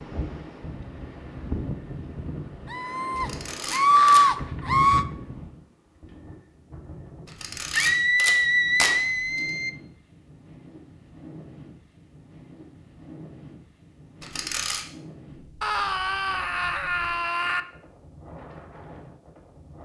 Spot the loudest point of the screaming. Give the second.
4 s.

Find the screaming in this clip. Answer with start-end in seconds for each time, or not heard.
2.7-5.0, 7.7-9.7, 15.6-17.6.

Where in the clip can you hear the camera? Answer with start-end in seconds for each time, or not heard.
3.1-4.2, 7.2-9.4, 14.2-14.8.